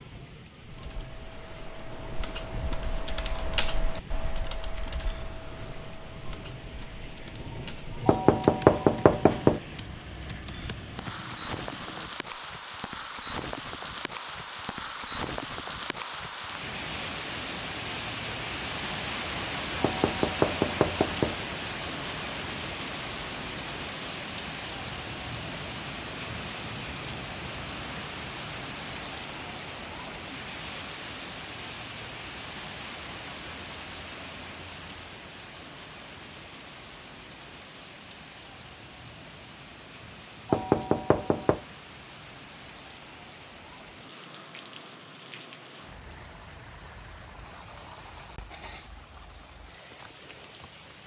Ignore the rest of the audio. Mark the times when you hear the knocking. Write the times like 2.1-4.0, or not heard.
8.1-9.6, 19.8-21.4, 40.5-41.6.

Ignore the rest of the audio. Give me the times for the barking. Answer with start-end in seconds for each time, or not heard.
not heard.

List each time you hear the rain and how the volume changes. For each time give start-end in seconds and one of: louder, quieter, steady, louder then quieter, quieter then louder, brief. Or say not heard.
0.0-51.0 louder then quieter.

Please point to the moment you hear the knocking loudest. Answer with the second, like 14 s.
9 s.